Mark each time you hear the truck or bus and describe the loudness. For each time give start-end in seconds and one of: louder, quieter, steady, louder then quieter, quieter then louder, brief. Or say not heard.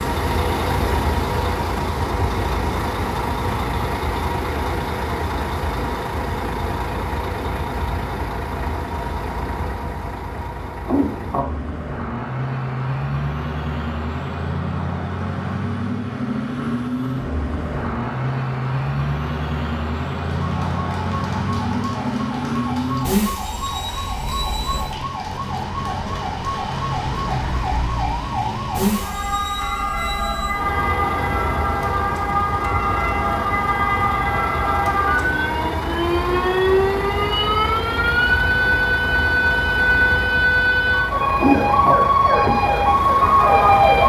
0.0-44.0 steady.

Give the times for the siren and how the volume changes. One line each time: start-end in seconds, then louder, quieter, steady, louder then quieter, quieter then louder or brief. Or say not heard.
20.2-44.0 louder.